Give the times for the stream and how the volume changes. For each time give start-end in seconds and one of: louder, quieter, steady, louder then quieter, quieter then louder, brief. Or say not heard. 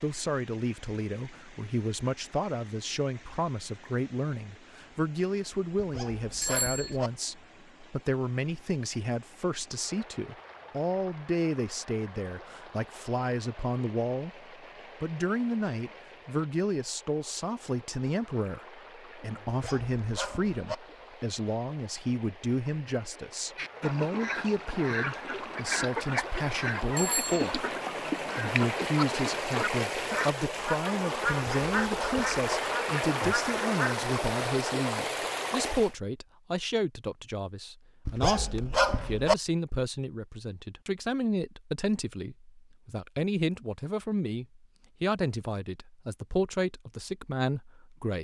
0.0-36.0 louder.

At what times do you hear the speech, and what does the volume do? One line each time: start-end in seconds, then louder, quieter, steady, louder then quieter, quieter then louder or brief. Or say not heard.
0.0-27.6 steady
28.4-48.2 steady.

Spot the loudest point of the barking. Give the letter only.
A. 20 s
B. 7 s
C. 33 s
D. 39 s
D.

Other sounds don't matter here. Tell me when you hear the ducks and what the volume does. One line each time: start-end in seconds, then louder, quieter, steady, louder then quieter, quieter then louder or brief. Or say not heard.
23.6-34.0 steady.